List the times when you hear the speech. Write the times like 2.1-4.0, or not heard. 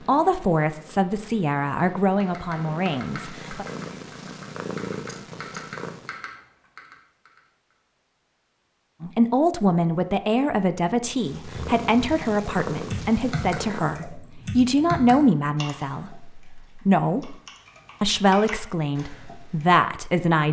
0.1-3.6, 9.0-17.4, 18.0-20.4.